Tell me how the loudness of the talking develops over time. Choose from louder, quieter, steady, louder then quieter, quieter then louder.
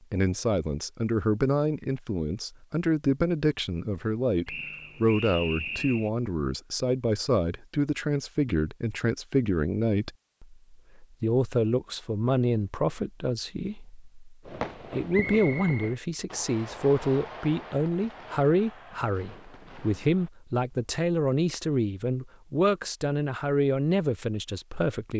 steady.